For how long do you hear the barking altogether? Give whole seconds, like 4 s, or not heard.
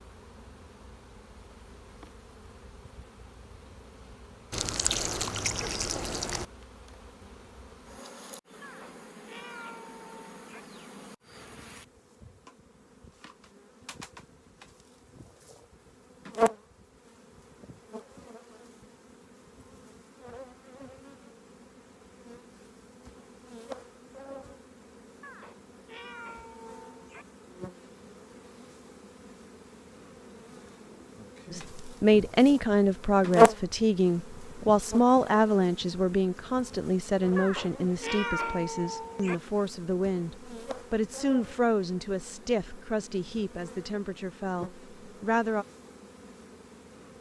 not heard.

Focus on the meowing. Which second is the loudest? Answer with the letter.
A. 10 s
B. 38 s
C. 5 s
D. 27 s
B.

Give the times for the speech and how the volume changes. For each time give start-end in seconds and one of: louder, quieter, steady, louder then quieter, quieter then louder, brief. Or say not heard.
31.5-45.6 quieter.